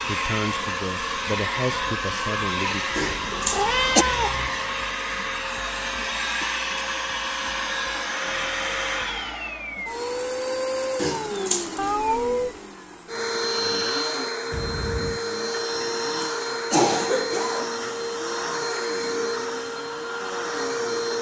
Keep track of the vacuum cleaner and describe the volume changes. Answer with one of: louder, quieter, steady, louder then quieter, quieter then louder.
steady.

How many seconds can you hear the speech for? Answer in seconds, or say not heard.
3 s.